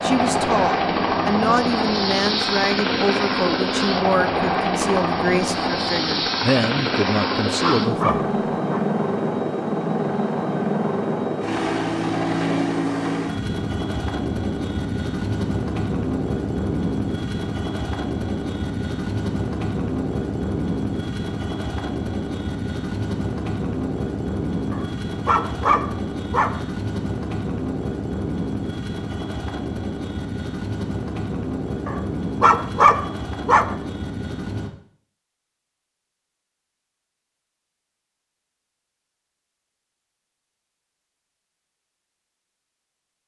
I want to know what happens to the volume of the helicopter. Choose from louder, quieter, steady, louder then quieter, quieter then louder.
quieter.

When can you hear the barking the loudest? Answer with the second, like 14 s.
33 s.